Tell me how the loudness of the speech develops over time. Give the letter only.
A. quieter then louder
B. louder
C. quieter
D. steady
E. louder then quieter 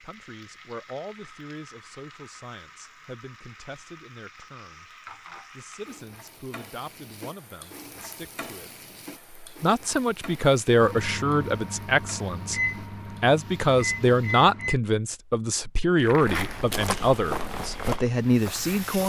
B.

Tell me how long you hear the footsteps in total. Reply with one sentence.
The footsteps can be heard for 3 seconds in total.